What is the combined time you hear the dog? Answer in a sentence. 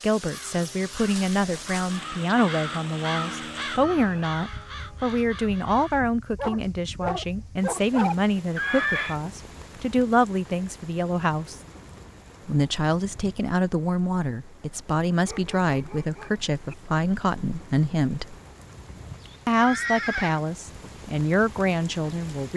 You can hear the dog for 3 seconds altogether.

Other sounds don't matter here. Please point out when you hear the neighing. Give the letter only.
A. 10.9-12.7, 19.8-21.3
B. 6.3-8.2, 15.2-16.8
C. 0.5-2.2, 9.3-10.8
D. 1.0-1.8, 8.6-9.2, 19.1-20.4
D.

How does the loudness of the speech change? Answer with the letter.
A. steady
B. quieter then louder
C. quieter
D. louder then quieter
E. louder
A.